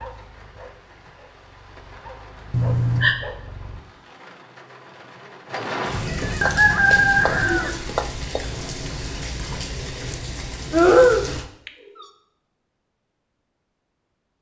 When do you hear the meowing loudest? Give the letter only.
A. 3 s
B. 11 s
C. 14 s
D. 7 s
B.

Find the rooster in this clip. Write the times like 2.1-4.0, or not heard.
6.4-8.4.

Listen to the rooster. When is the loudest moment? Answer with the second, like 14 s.
7 s.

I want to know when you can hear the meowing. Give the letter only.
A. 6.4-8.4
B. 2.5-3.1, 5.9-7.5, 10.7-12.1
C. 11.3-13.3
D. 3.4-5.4
B.